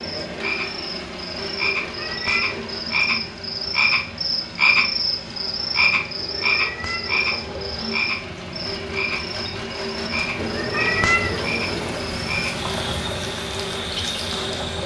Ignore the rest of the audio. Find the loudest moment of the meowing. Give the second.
11 s.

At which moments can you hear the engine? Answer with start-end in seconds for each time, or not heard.
0.0-14.8.